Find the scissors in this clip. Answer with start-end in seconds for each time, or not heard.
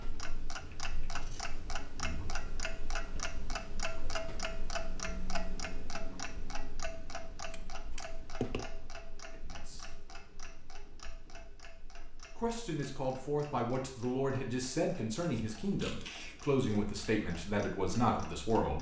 1.1-1.6, 7.5-8.7, 15.3-16.6.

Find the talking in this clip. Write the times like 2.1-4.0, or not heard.
9.3-10.0, 12.3-18.7.